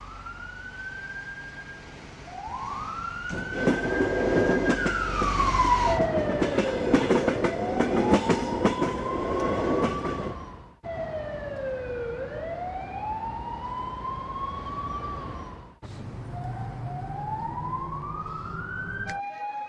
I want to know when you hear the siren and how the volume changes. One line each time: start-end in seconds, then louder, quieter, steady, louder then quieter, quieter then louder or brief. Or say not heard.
0.0-19.6 louder then quieter.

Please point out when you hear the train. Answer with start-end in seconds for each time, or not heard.
3.5-10.3.